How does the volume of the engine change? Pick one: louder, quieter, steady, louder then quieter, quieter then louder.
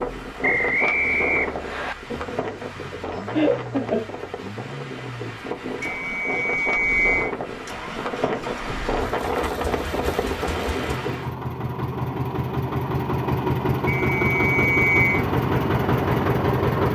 louder.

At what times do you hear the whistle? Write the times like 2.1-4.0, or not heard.
0.4-1.9, 6.0-7.2, 13.8-15.2.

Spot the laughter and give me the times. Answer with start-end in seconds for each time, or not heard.
2.1-4.1.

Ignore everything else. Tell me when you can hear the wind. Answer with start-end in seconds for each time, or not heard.
0.0-11.3.